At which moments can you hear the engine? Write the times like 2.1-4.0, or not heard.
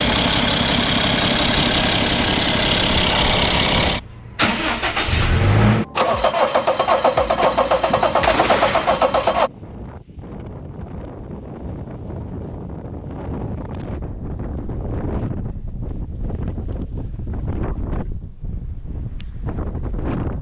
0.0-9.5.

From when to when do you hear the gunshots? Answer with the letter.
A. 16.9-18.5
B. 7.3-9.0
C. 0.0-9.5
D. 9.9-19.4
B.